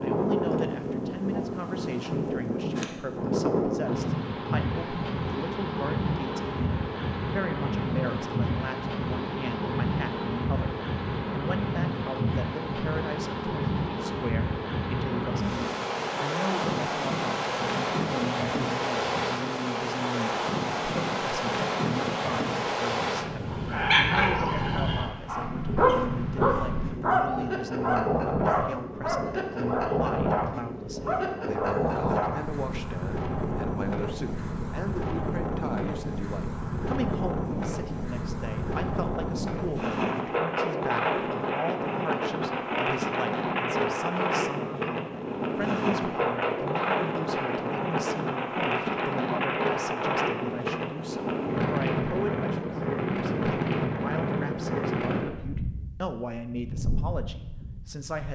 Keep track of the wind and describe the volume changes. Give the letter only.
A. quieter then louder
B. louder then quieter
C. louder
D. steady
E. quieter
D.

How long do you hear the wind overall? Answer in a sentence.
The wind can be heard for 58 seconds in total.